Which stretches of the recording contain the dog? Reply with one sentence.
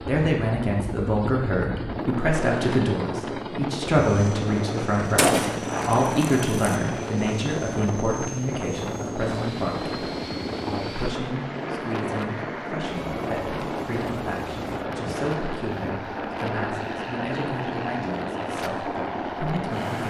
The dog can't be heard in this clip.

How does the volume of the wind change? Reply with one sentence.
The loudness of the wind stays about the same.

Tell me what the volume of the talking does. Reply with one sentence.
The loudness of the talking goes down.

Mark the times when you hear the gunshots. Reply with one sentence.
The gunshots can be heard from 5.2 to 6.8 s.